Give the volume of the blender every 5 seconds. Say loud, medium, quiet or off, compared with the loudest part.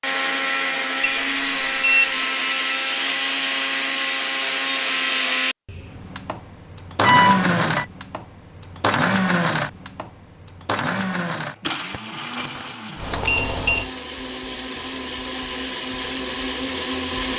loud, loud, medium, loud.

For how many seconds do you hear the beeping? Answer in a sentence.
You can hear the beeping for 3 seconds altogether.